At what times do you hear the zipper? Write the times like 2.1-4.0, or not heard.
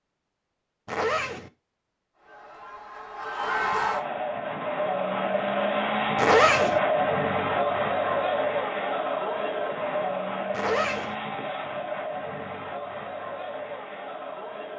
0.8-1.5, 6.2-6.8, 10.5-11.2.